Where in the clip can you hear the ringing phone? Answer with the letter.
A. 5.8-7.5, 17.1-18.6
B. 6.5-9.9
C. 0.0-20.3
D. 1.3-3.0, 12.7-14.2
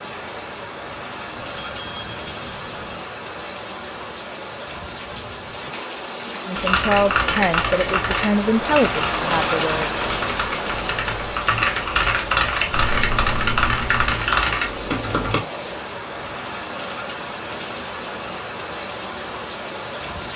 D.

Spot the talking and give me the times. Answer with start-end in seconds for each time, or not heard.
6.5-9.9.